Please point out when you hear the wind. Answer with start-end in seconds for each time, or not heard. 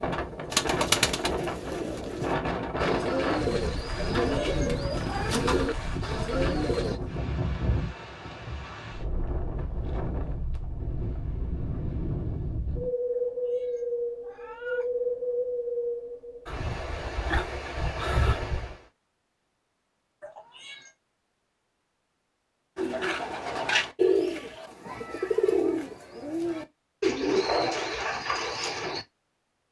0.0-18.8.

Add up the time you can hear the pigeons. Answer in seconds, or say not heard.
13 s.